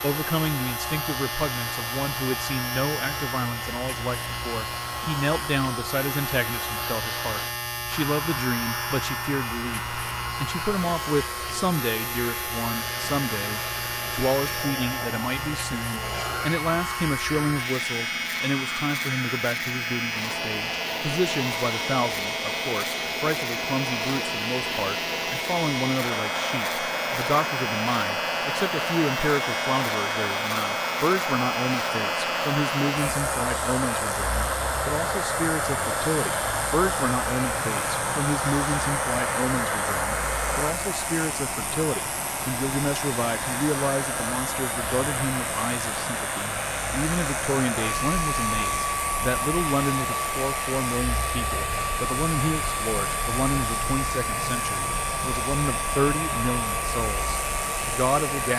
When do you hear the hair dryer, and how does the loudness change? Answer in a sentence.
The hair dryer can be heard from 0.0 to 58.5 s, getting louder.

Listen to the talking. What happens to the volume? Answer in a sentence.
The volume of the talking stays about the same.